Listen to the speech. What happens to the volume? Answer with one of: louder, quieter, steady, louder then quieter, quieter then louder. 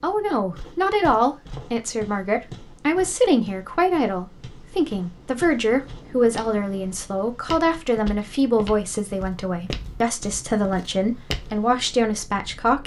steady.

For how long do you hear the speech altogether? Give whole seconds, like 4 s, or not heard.
13 s.